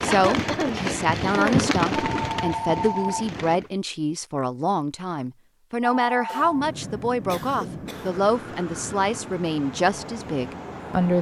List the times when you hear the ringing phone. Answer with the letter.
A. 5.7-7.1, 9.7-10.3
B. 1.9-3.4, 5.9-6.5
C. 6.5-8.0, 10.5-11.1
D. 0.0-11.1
B.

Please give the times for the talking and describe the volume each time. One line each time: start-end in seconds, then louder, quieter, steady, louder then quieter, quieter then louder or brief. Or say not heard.
0.0-11.1 steady.